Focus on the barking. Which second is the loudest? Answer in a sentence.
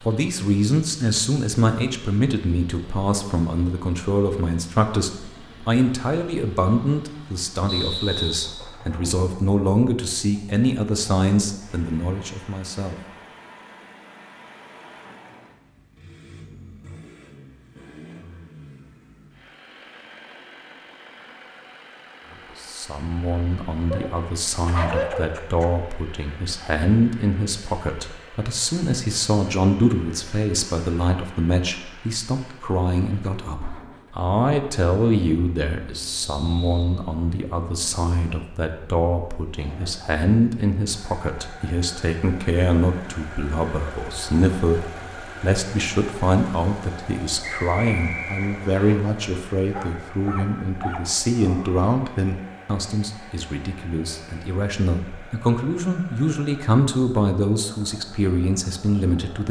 The loudest moment of the barking is at 25 seconds.